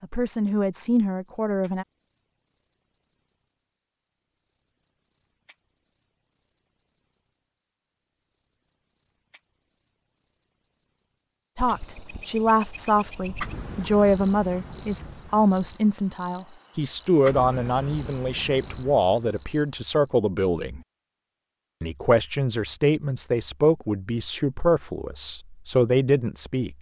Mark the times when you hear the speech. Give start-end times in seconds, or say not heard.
0.0-1.9, 11.6-20.8, 21.8-26.7.